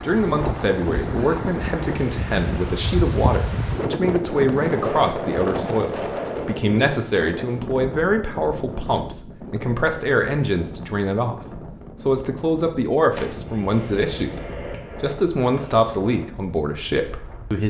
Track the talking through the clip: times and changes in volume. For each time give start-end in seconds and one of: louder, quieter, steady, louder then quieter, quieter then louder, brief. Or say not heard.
0.0-17.6 steady.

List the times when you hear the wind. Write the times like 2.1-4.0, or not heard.
0.0-17.6.